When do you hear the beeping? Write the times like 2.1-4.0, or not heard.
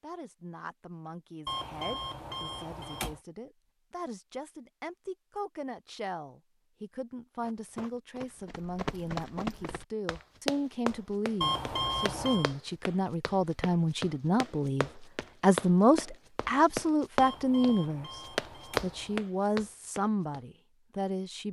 1.4-3.2, 11.4-12.6, 17.1-19.2.